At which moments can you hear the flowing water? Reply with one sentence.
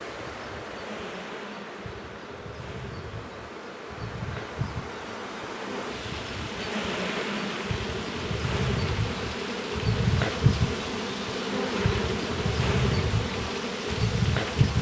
The flowing water can be heard from 0.0 to 14.7 s.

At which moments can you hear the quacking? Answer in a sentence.
The quacking can't be heard in this clip.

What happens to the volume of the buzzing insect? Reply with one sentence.
The loudness of the buzzing insect goes up.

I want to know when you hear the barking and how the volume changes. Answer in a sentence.
You can't hear the barking here.